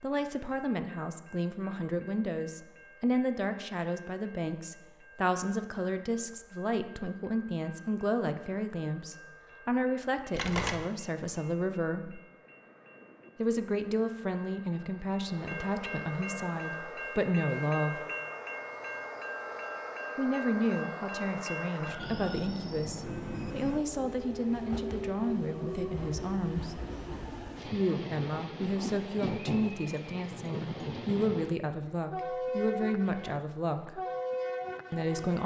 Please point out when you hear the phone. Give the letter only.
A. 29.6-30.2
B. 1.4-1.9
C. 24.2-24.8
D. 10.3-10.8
D.